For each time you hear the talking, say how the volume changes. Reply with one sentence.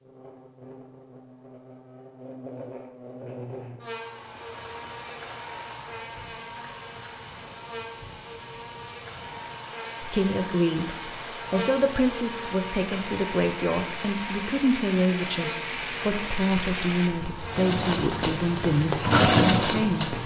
You can hear the talking from 10.1 to 20.2 s, at a steady volume.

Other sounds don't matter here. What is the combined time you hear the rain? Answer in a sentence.
You can hear the rain for 16 seconds altogether.